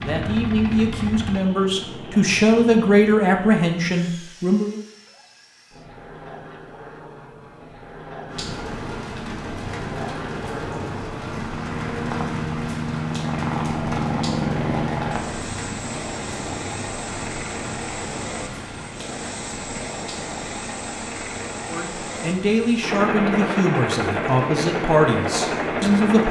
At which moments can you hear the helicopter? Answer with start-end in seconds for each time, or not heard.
0.0-26.2.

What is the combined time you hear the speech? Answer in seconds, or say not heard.
9 s.